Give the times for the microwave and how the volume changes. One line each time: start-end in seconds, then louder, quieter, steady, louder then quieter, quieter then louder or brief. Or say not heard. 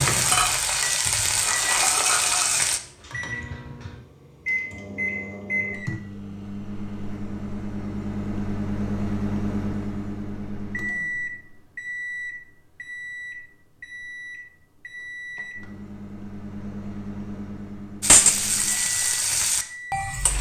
0.0-20.2 louder then quieter.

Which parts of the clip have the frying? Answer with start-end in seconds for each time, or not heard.
0.0-2.8, 18.0-20.3.